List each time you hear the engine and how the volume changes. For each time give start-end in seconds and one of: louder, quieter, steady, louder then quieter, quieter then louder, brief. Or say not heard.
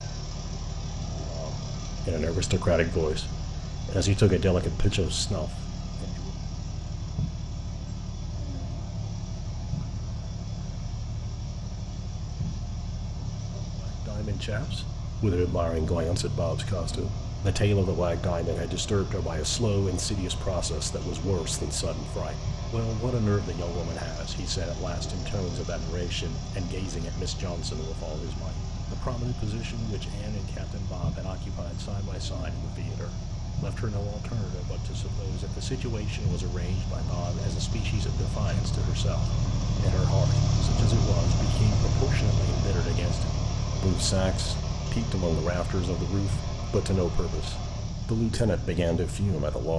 0.0-49.7 louder.